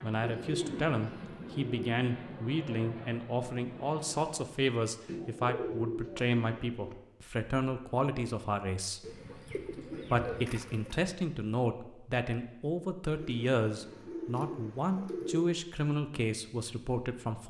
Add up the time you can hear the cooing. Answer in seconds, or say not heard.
8 s.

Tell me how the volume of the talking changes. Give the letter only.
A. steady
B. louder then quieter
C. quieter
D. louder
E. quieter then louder
A.